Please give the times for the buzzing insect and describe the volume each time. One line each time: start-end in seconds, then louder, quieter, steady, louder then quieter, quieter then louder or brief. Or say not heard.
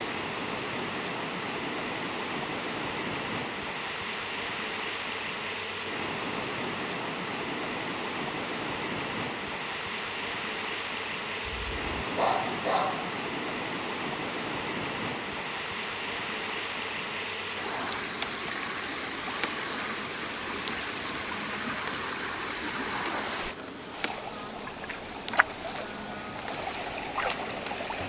0.0-28.0 steady.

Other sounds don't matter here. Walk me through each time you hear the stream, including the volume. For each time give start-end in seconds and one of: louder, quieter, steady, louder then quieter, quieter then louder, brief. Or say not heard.
0.0-28.0 steady.